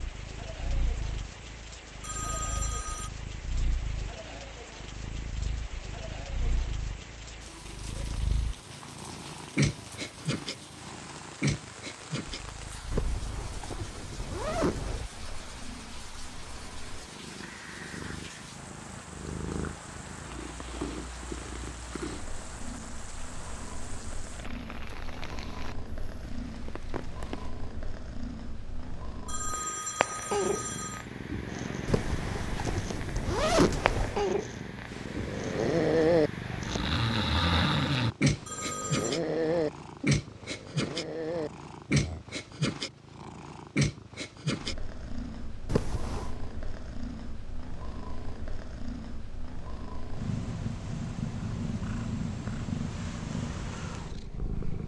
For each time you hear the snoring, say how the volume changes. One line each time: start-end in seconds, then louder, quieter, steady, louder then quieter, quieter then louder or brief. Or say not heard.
34.9-42.2 quieter.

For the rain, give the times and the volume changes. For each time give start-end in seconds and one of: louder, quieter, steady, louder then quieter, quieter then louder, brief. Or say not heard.
0.0-27.5 steady.